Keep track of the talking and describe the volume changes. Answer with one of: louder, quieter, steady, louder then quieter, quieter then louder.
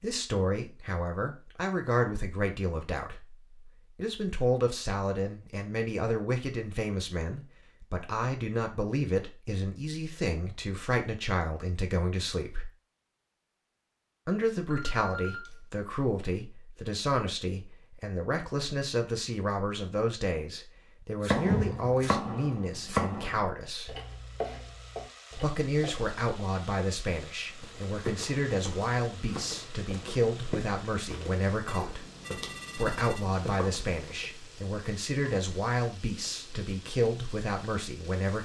steady.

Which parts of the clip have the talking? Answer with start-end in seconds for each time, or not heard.
0.0-12.7, 14.2-23.9, 25.4-32.0, 32.8-38.4.